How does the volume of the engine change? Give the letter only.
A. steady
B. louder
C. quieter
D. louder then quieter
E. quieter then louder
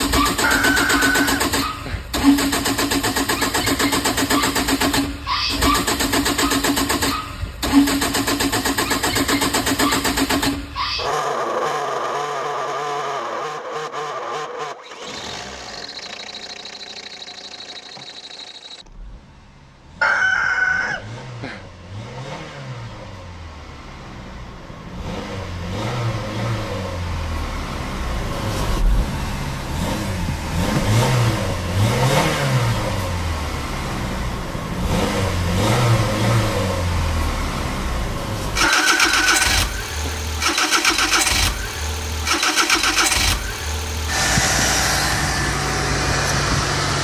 E.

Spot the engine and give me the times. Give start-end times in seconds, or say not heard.
0.0-46.9.